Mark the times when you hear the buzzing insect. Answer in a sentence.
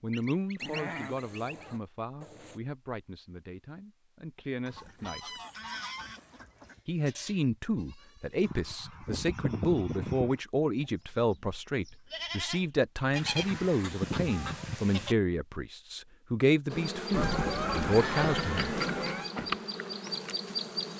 You can hear the buzzing insect from 16.7 to 20.9 s.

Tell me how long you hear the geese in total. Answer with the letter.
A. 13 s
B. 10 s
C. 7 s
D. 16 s
B.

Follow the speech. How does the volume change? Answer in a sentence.
The volume of the speech goes up.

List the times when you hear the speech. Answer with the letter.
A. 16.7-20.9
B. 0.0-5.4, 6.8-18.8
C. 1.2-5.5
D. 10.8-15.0
B.